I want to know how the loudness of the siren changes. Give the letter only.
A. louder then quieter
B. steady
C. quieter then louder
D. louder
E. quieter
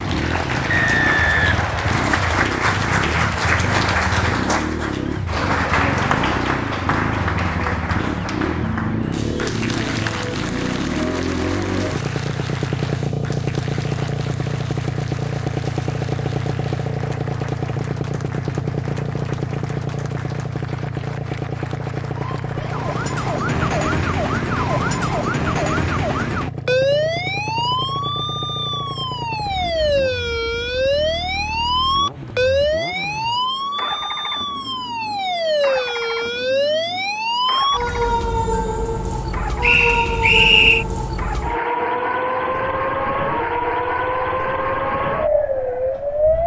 B.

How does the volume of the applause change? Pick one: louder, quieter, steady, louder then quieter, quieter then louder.
quieter.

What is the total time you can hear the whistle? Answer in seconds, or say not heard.
3 s.